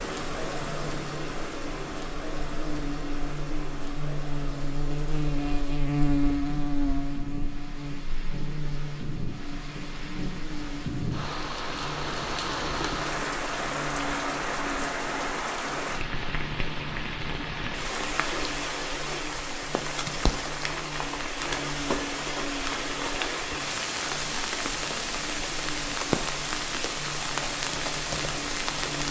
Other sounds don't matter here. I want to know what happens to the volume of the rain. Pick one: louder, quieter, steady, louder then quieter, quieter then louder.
louder.